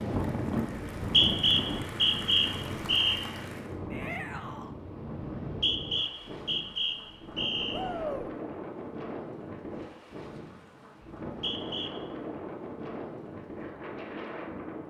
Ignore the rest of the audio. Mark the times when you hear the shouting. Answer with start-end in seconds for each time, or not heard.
3.9-4.8, 7.7-8.3.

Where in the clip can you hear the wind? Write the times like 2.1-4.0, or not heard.
0.0-14.8.